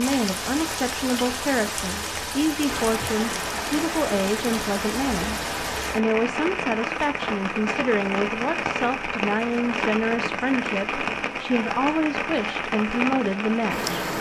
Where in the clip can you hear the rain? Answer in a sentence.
You can hear the rain from 0.0 to 14.1 s.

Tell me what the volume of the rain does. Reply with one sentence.
The volume of the rain stays about the same.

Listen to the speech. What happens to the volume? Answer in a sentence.
The volume of the speech stays about the same.